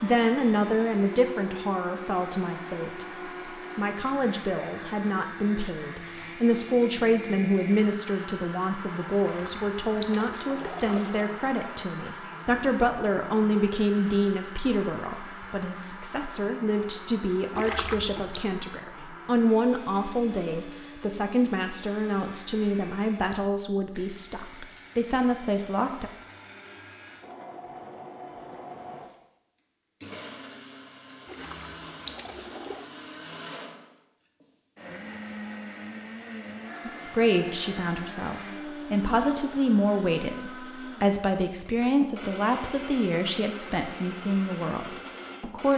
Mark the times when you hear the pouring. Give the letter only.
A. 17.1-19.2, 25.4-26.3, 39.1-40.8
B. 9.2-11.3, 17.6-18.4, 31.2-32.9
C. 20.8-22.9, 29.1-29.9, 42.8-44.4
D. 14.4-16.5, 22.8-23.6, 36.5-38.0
B.